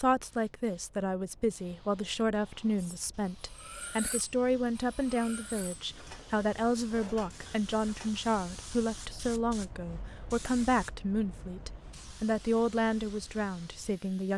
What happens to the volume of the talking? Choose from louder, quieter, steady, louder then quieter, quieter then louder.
steady.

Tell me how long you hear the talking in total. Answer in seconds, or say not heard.
14 s.